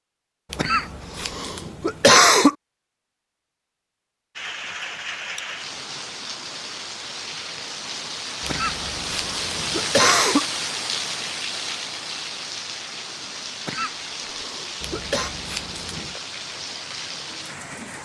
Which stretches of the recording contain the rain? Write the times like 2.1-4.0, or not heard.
4.3-18.0.